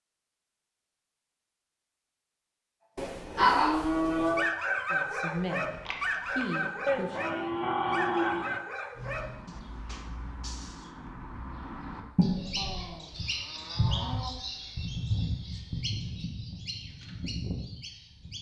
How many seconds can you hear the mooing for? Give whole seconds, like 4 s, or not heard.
5 s.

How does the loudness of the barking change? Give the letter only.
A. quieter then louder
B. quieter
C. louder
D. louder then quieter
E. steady
B.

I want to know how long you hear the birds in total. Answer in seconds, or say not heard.
9 s.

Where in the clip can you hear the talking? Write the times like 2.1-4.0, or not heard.
4.9-7.2.